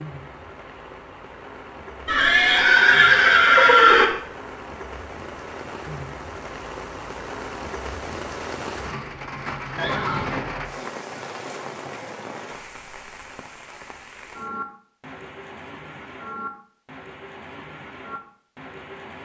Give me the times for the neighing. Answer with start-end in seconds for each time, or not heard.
2.0-4.0, 9.8-10.5.